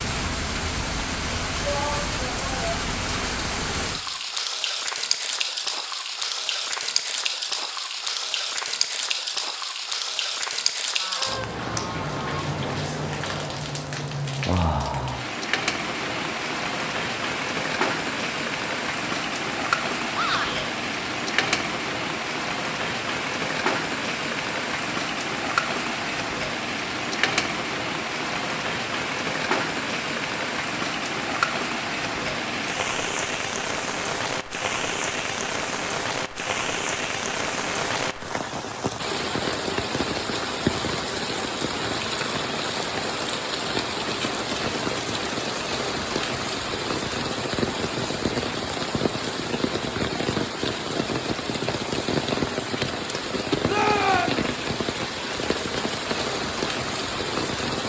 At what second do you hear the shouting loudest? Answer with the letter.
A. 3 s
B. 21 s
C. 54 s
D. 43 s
C.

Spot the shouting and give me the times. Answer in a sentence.
You can hear the shouting from 1.6 to 2.8 s, from 20.1 to 20.7 s and from 53.6 to 54.5 s.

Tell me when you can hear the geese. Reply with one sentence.
You can hear the geese from 10.9 to 12.4 s.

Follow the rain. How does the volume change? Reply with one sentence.
The loudness of the rain stays about the same.